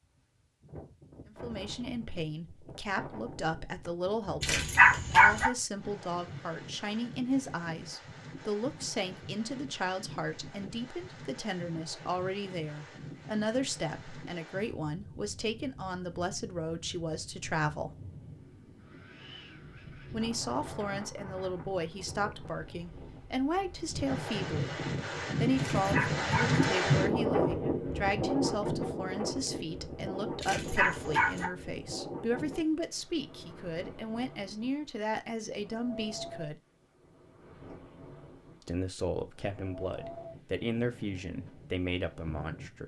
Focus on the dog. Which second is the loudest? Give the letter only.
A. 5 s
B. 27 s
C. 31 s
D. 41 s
A.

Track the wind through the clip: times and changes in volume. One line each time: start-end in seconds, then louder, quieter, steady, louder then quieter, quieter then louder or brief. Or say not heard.
0.0-42.8 louder then quieter.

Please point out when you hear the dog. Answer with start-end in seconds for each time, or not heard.
4.4-5.5, 25.6-26.6, 30.4-31.5.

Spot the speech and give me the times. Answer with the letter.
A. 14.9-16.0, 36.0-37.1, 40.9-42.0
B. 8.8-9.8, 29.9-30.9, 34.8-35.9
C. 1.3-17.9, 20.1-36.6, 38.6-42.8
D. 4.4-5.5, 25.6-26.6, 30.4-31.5
C.